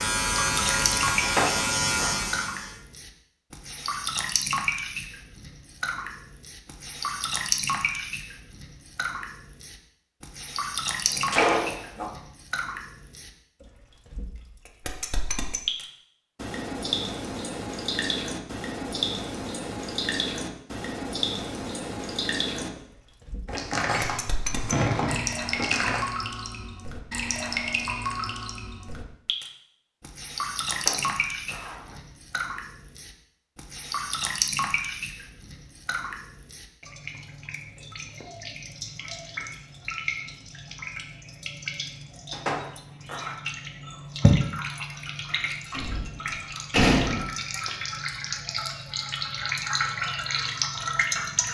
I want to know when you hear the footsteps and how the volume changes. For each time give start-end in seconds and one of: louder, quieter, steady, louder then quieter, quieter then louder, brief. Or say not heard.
not heard.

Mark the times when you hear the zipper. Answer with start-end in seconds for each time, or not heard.
1.2-2.2, 30.7-32.0, 42.3-43.4.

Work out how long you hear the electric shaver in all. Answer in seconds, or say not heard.
3 s.